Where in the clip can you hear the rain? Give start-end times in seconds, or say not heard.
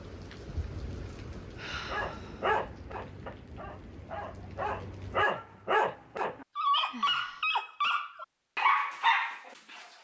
0.0-5.2.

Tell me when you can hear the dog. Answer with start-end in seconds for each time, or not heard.
1.9-9.9.